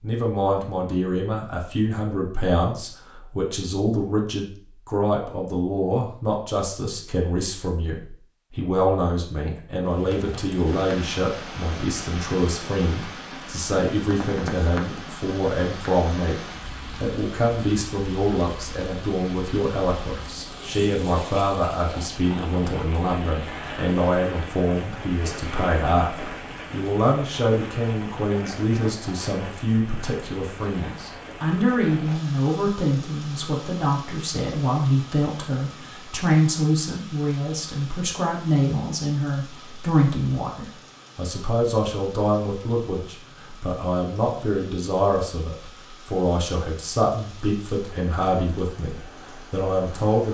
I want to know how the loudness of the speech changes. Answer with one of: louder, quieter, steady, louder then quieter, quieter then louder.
steady.